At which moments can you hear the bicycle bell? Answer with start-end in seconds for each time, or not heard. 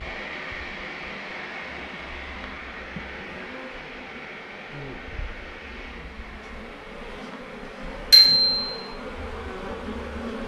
8.1-8.7.